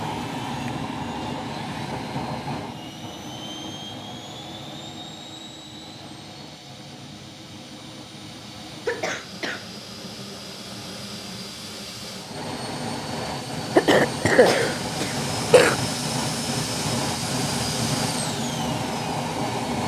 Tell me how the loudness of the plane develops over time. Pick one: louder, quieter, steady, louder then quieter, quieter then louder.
quieter then louder.